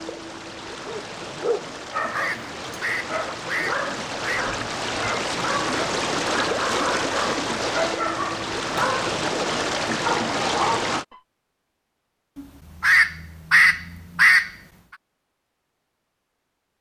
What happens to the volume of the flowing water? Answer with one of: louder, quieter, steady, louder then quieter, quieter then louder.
louder.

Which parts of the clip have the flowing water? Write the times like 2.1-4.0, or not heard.
0.0-11.1.